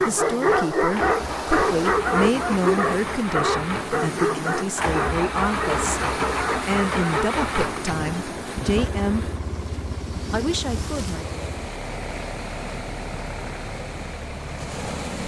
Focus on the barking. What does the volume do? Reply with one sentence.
The volume of the barking goes down.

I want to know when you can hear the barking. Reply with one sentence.
The barking can be heard from 0.0 to 7.3 s.